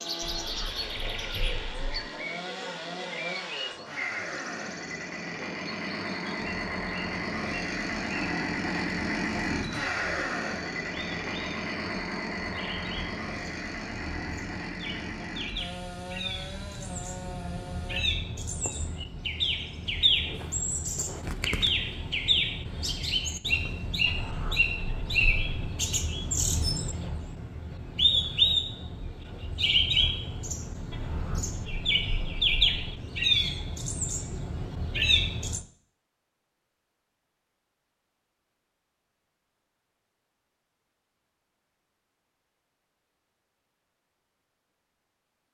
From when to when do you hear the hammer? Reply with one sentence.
The hammer can't be heard in this clip.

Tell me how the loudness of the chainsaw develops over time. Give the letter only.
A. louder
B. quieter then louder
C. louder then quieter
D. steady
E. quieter
C.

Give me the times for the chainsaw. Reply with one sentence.
You can hear the chainsaw from 0.0 to 18.1 s.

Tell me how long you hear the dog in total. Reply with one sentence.
The dog can't be heard in this clip.